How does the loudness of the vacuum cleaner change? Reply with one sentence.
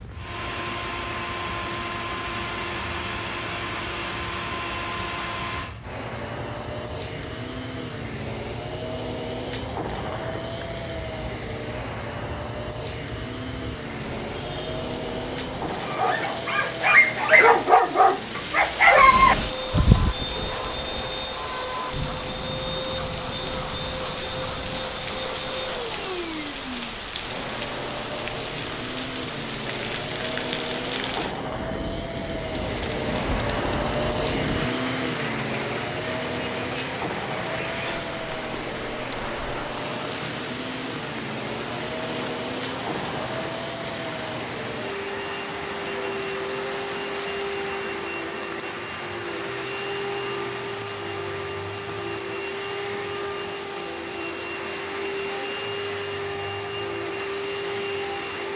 The volume of the vacuum cleaner stays about the same.